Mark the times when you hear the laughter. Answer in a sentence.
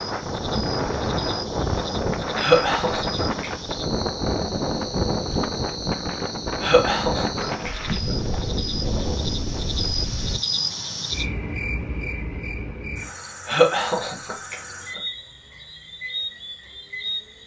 The laughter can be heard from 2.4 to 3.5 s, from 6.6 to 8.2 s and from 13.4 to 15.0 s.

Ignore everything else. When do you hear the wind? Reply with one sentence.
The wind can be heard from 0.0 to 10.4 s.